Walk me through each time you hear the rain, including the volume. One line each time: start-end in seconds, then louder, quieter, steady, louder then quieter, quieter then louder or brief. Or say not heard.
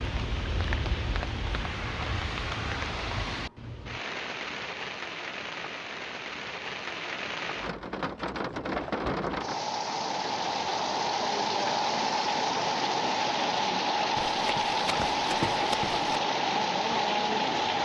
0.0-17.8 louder.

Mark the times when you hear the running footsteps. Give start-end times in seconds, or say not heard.
14.2-15.9.